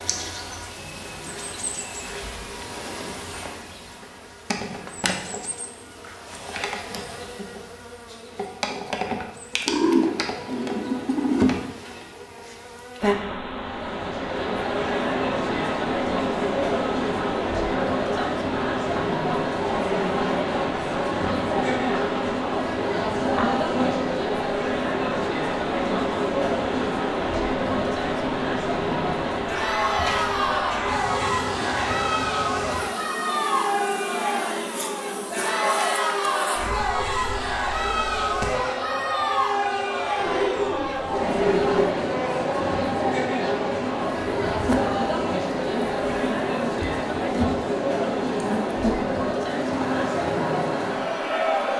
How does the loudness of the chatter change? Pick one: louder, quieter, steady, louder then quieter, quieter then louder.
steady.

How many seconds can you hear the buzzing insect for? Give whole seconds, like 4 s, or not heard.
52 s.